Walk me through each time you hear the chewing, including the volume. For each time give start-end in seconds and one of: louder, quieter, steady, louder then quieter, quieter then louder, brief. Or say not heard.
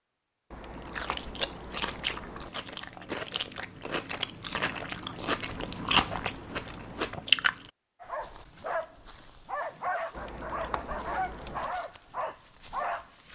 0.8-7.7 louder then quieter.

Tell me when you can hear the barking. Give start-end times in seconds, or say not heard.
8.0-13.3.